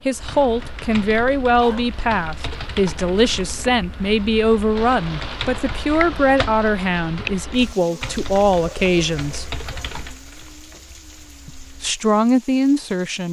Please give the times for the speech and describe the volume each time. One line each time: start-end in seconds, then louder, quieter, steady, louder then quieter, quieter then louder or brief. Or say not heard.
0.1-9.6 steady
11.4-13.2 brief.